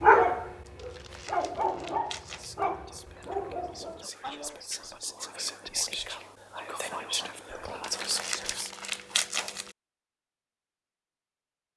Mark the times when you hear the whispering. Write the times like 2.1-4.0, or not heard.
2.1-8.7.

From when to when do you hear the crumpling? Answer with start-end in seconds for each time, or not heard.
0.8-2.5, 7.8-9.8.